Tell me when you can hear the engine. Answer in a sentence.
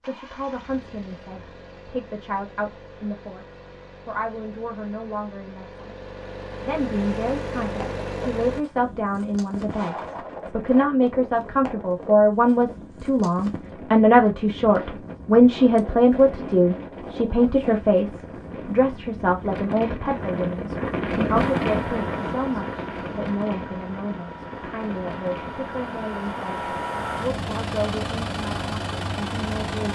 The engine can be heard from 0.0 to 8.7 s and from 21.4 to 29.9 s.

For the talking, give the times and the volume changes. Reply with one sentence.
You can hear the talking from 0.0 to 29.9 s, getting louder then quieter.